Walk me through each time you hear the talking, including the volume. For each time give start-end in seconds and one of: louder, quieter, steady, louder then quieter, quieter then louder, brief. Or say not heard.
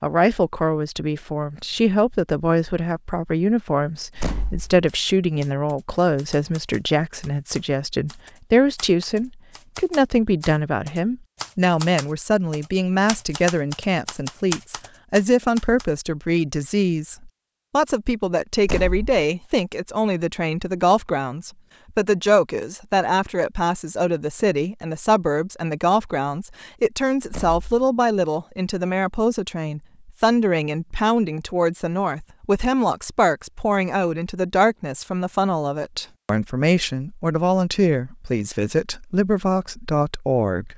0.0-40.7 steady.